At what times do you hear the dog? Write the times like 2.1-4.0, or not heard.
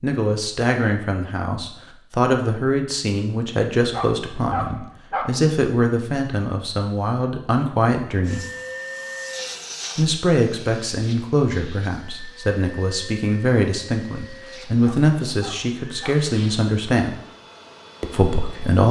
3.9-5.3, 14.8-16.2.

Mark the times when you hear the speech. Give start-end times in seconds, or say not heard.
0.0-8.4, 9.9-17.1, 18.0-18.8.